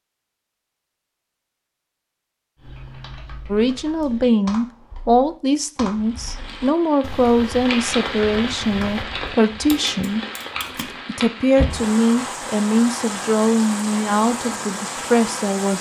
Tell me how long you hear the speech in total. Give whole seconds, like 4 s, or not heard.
11 s.